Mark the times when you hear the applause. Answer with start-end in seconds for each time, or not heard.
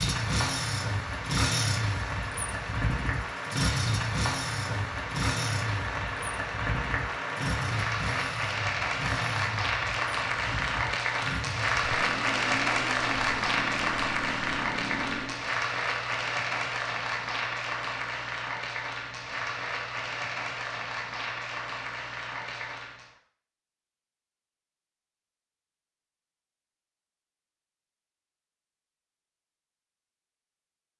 0.0-23.1.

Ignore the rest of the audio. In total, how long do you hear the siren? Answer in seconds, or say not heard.
not heard.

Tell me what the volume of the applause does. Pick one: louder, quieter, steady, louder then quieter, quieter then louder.
louder then quieter.